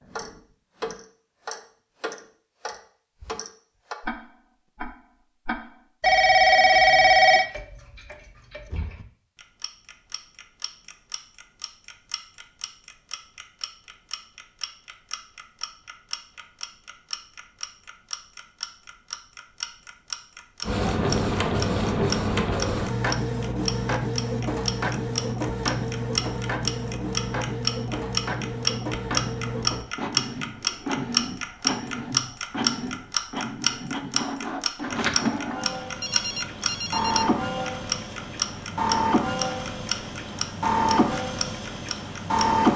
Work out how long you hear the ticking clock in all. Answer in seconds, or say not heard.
43 s.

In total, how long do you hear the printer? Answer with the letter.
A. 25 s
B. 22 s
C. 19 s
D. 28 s
B.